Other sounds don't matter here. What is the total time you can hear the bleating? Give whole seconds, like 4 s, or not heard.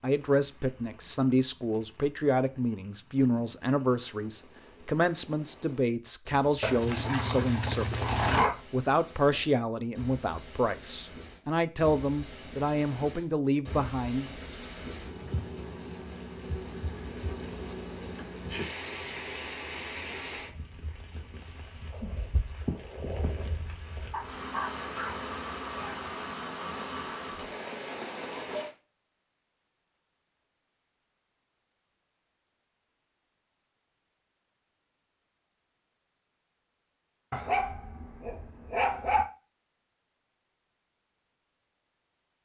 not heard.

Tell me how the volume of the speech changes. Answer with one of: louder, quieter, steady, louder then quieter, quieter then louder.
steady.